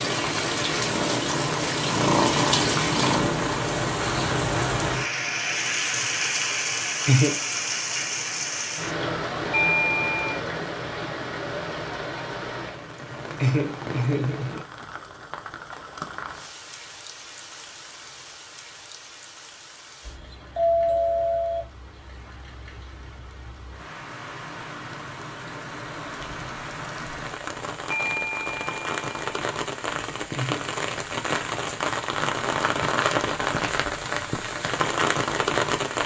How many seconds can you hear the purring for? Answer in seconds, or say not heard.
4 s.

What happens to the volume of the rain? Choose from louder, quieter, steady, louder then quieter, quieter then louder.
quieter then louder.